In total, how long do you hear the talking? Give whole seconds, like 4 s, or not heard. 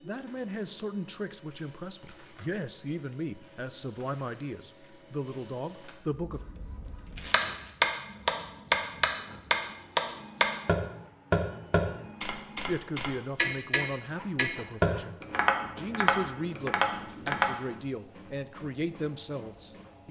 14 s.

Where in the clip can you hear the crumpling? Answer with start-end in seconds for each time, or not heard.
6.5-7.8.